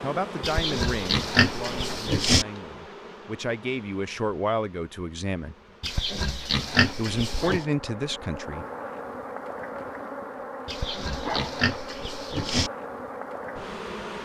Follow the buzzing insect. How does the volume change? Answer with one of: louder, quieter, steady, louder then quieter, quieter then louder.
quieter then louder.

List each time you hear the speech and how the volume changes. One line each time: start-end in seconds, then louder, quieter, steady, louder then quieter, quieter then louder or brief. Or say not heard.
0.0-5.5 quieter then louder
7.0-8.7 brief.